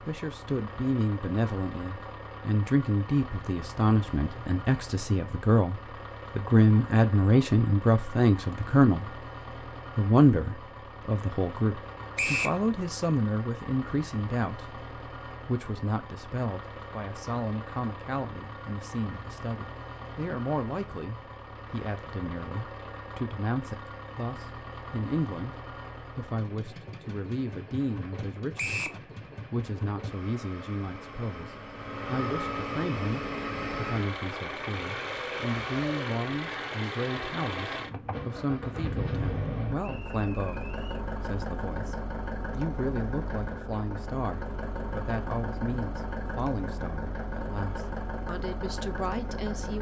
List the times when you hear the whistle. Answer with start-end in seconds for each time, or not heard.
12.2-12.6, 28.6-29.0, 39.8-41.0.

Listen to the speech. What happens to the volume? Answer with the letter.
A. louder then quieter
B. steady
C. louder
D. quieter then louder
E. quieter
E.